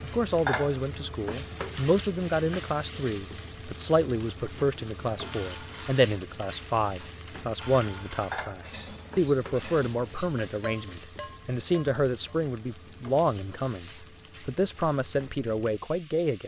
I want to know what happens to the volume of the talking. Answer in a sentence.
The volume of the talking stays about the same.